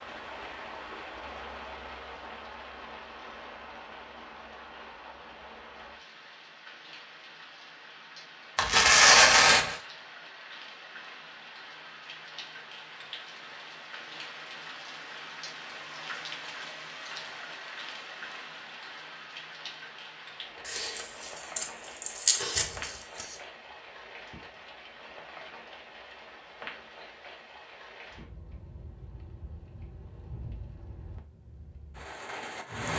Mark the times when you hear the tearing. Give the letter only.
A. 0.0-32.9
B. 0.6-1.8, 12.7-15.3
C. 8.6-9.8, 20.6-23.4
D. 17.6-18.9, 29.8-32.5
C.